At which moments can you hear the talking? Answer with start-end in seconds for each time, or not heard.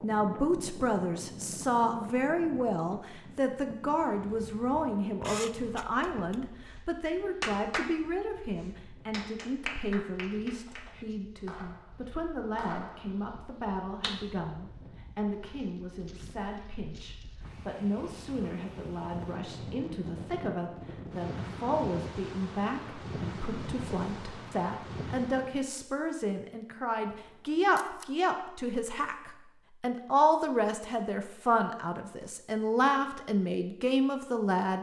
0.0-34.7.